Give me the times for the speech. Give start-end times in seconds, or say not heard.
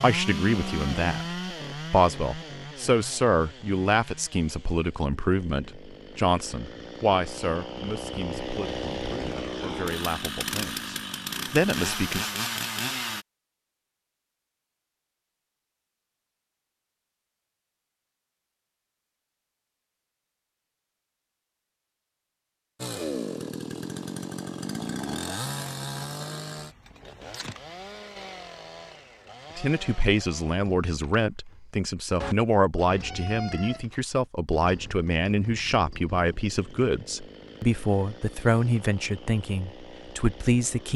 0.0-12.3, 29.6-40.9.